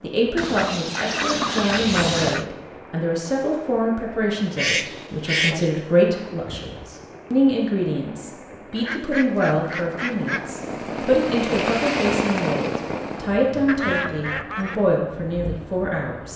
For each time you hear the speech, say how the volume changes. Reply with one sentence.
You can hear the speech from 0.0 to 16.3 s, at a steady volume.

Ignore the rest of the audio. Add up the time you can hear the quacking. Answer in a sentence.
You can hear the quacking for 6 seconds altogether.